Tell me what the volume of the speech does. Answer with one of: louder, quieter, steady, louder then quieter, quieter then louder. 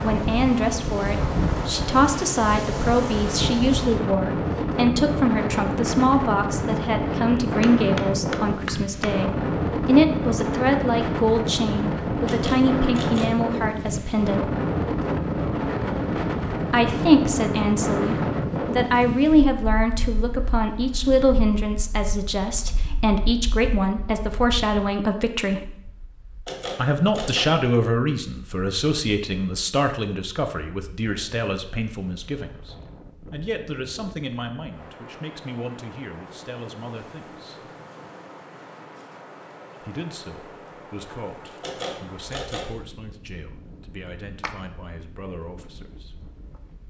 quieter.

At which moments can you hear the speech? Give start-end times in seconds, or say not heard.
0.0-14.5, 16.7-25.8, 26.8-37.7, 39.8-46.2.